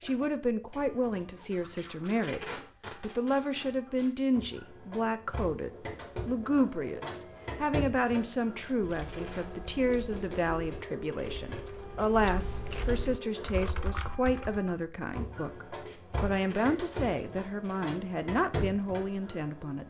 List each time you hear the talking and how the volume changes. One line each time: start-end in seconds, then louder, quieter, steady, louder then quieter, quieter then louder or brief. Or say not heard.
0.0-19.8 steady.